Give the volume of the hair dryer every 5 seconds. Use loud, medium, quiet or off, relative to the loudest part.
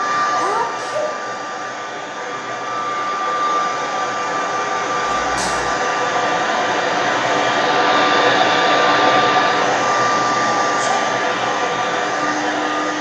medium, loud, loud.